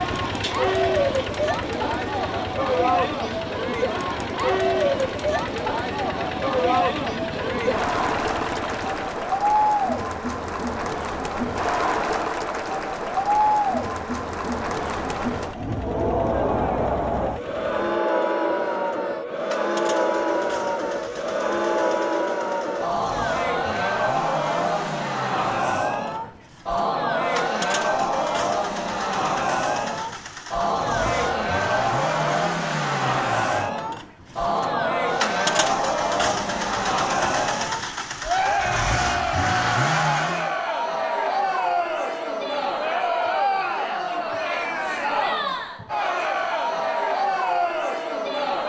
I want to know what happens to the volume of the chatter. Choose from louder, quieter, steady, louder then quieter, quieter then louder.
steady.